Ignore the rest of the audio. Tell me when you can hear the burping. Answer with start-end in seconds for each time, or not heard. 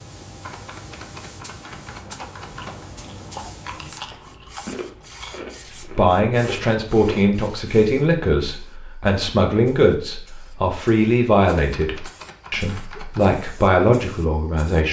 not heard.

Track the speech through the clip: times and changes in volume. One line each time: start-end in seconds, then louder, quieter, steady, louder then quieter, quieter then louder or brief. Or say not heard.
5.9-14.8 steady.